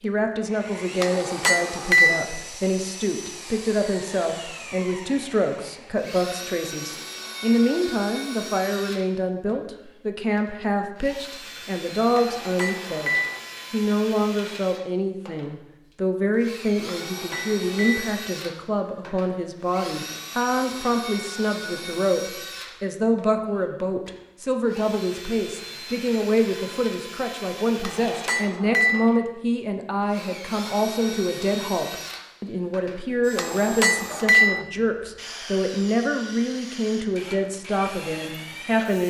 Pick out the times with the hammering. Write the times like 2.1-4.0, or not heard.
1.0-2.2, 12.2-13.4, 16.9-18.1, 27.8-29.1, 33.4-34.6.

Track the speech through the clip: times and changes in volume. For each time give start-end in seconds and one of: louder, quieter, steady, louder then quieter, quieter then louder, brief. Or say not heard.
0.0-39.0 steady.